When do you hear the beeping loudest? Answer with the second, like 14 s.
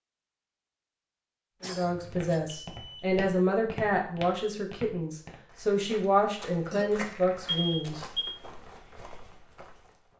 8 s.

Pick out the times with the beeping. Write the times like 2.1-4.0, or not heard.
1.9-3.0, 7.5-8.3.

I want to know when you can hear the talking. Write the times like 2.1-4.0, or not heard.
1.6-8.1.